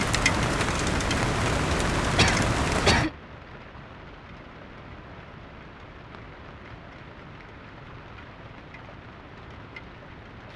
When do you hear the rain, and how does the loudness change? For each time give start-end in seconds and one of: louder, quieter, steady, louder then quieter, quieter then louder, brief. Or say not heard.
0.0-10.5 quieter.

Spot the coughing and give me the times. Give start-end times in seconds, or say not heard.
2.1-3.1.